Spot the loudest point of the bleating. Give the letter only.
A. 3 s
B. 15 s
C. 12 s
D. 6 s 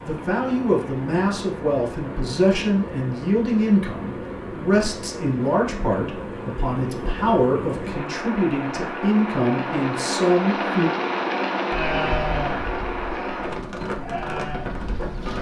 C.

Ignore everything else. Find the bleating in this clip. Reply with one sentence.
The bleating can be heard from 11.7 to 15.3 s.